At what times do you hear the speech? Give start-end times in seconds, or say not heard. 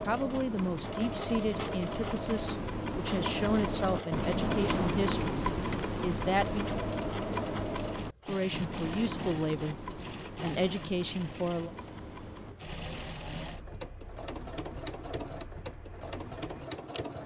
0.1-6.8, 8.2-11.7.